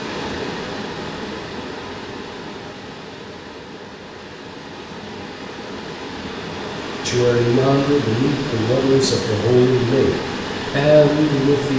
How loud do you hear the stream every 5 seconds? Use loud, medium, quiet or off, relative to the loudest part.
medium, loud, loud.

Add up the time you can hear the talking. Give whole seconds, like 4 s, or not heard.
5 s.